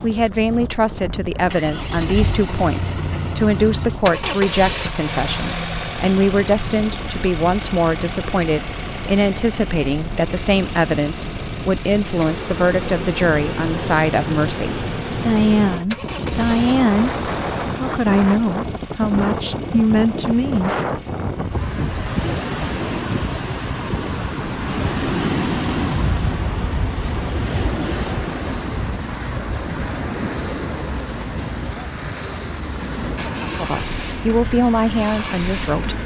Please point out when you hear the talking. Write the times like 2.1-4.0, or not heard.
0.0-17.1, 17.7-20.8, 33.5-36.0.